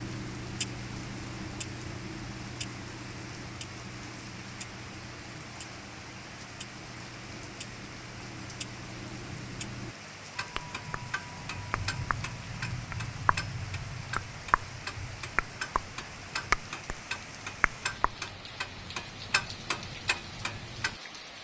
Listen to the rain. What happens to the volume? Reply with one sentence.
The loudness of the rain stays about the same.